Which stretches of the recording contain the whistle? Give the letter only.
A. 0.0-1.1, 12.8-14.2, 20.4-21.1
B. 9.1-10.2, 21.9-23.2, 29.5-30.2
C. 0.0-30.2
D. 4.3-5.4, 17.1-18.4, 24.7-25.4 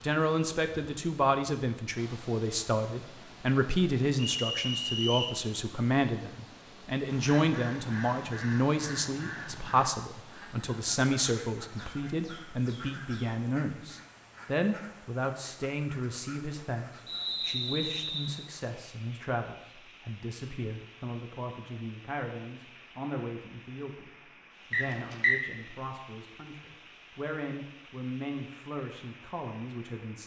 D.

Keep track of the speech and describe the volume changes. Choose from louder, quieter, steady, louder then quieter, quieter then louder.
quieter.